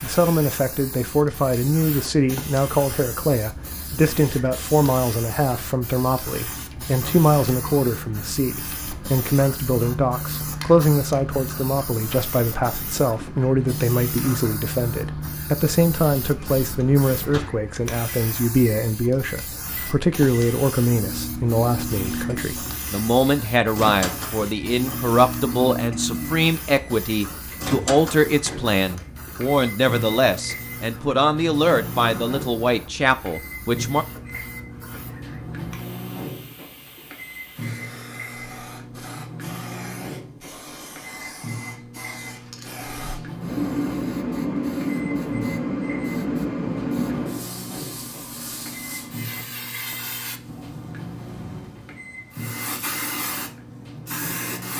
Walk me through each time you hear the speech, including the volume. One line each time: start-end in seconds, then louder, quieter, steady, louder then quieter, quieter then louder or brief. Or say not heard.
0.0-34.0 steady.